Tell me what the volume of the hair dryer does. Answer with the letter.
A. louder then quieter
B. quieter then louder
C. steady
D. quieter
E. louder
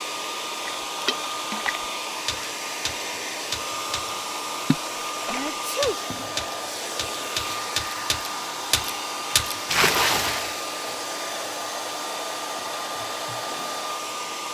C.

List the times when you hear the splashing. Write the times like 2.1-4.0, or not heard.
0.7-10.6.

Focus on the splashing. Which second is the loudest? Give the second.
10 s.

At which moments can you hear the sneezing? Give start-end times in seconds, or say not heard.
5.3-6.0.